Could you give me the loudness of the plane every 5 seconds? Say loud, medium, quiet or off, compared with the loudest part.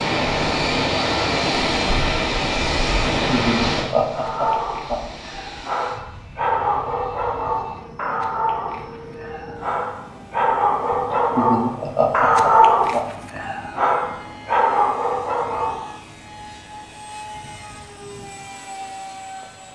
loud, quiet, quiet, quiet.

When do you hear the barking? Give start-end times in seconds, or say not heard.
4.1-15.9.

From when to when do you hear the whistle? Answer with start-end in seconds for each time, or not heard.
not heard.